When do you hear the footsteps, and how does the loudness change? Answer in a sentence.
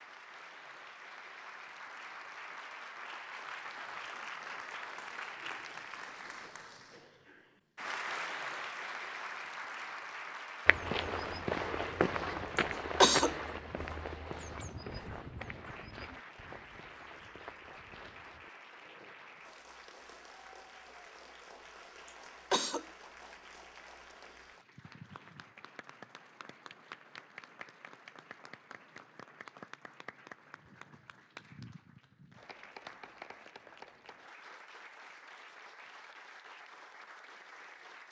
You can hear the footsteps from 10.7 to 18.5 s, getting quieter.